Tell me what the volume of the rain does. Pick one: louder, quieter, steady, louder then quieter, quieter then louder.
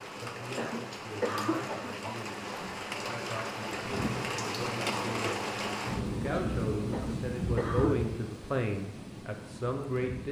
louder then quieter.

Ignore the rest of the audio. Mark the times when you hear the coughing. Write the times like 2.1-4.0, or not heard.
0.5-2.1, 6.8-8.1.